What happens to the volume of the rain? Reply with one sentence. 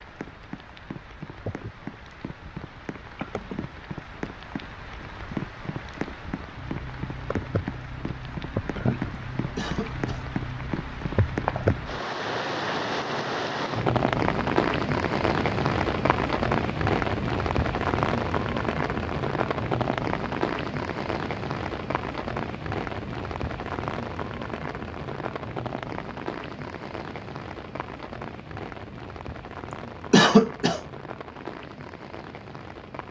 The volume of the rain goes up, then down.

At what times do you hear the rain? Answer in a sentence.
The rain can be heard from 0.0 to 33.0 s.